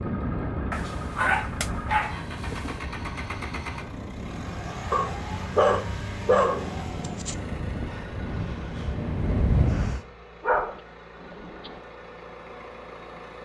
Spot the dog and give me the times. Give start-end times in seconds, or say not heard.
0.7-2.8, 4.9-7.3, 10.4-11.8.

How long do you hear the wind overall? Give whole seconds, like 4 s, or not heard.
10 s.